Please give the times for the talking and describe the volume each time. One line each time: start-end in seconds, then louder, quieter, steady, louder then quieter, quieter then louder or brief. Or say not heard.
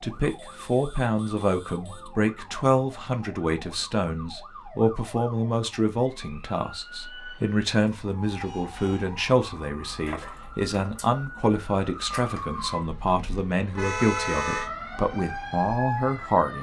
0.0-16.5 steady.